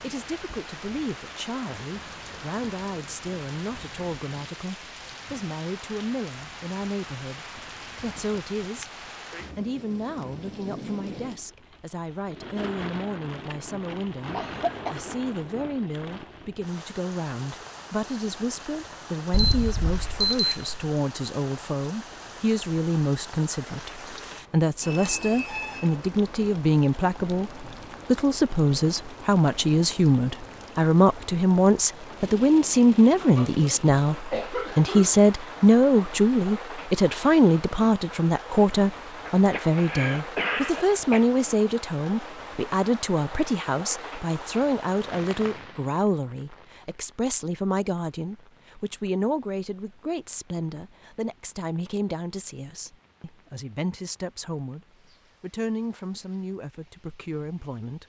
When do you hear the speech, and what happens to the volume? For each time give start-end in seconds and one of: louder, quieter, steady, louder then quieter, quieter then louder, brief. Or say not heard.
0.0-8.9 steady
9.6-54.8 louder then quieter
55.4-58.0 brief.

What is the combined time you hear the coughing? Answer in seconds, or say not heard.
5 s.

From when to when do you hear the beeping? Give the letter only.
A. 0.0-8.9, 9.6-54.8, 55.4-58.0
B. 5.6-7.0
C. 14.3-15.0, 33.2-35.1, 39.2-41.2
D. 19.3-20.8
D.